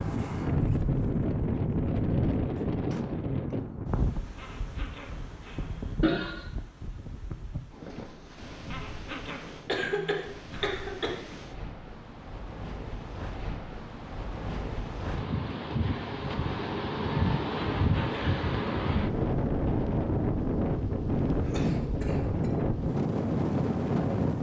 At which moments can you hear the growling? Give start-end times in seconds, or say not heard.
4.3-6.3, 8.7-10.7, 17.8-18.3.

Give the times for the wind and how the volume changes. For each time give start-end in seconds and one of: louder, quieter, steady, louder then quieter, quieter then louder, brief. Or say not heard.
0.0-24.3 quieter then louder.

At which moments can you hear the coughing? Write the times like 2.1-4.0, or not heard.
6.0-6.4, 9.7-11.2, 21.2-22.5.